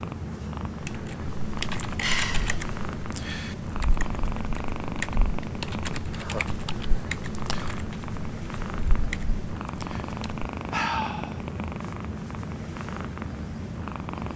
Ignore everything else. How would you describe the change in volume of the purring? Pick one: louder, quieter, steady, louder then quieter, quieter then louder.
steady.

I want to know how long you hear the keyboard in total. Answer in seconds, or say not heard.
10 s.